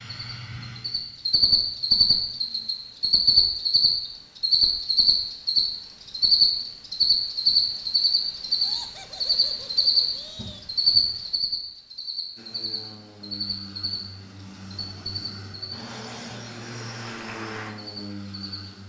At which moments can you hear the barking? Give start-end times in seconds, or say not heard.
not heard.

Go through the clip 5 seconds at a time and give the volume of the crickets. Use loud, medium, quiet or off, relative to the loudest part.
loud, loud, medium, quiet.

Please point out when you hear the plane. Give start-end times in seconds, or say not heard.
0.0-2.7, 12.3-18.8.